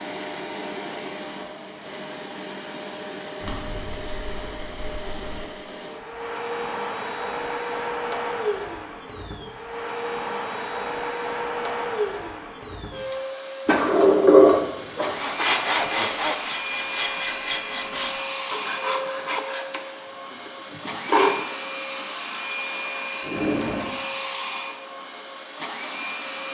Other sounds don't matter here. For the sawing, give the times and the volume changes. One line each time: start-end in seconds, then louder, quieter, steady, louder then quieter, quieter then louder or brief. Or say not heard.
15.2-21.5 quieter.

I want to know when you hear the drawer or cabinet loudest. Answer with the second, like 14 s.
14 s.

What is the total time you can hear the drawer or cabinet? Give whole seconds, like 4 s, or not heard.
4 s.